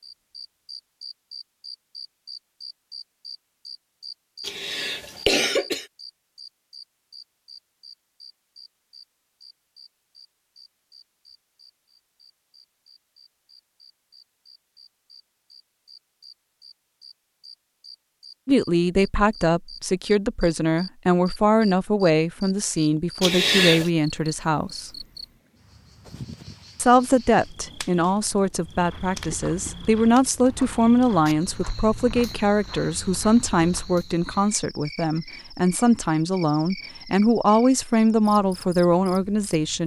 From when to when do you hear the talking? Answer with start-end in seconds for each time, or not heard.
18.4-24.9, 26.8-39.8.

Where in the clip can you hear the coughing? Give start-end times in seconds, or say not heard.
4.4-5.8, 23.2-23.9.